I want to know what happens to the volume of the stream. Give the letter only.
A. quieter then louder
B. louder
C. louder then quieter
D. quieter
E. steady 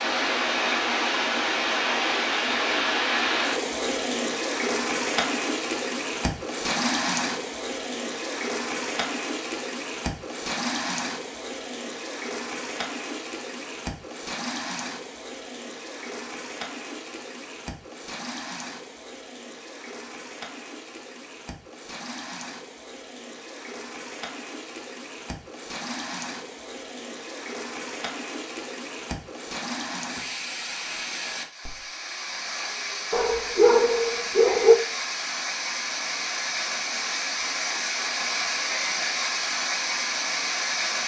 A.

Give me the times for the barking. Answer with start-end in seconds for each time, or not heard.
33.1-34.8.